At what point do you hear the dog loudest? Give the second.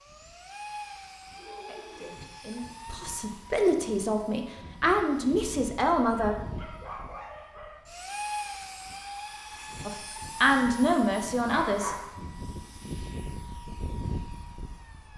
12 s.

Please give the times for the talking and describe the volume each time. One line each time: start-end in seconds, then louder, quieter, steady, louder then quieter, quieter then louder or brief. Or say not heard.
1.6-6.3 louder
9.8-11.9 brief.